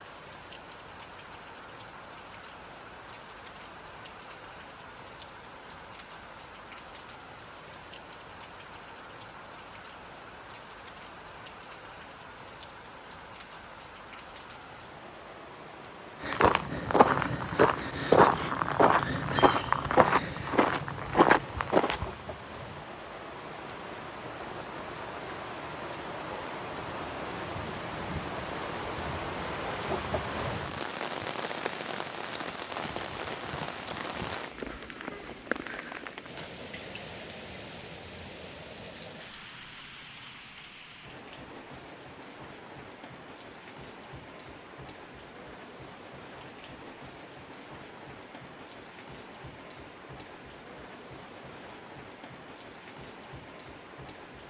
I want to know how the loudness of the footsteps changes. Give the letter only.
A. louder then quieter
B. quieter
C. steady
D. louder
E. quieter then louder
C.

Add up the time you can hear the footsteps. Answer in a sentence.
The footsteps can be heard for 6 seconds in total.